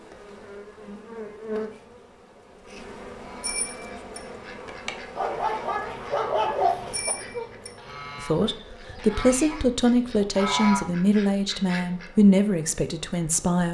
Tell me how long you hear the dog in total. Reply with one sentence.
You can hear the dog for 2 seconds altogether.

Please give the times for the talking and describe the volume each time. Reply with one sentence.
You can hear the talking from 8.2 to 13.6 s, at a steady volume.